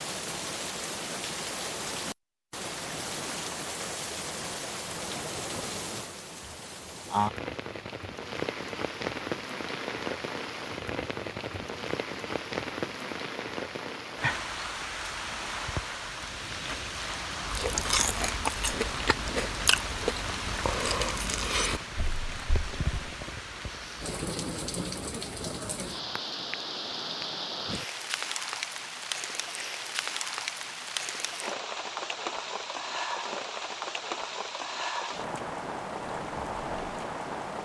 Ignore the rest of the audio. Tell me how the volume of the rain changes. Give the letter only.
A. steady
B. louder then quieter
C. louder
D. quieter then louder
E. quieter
A.